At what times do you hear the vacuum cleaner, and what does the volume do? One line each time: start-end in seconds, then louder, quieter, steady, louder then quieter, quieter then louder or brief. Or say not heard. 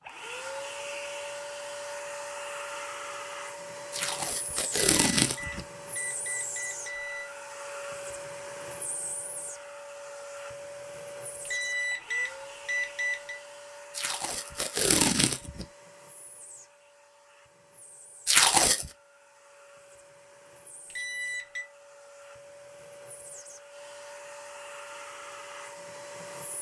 0.0-26.5 quieter then louder.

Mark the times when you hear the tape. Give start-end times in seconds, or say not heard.
3.9-5.7, 13.9-15.7, 18.2-18.9.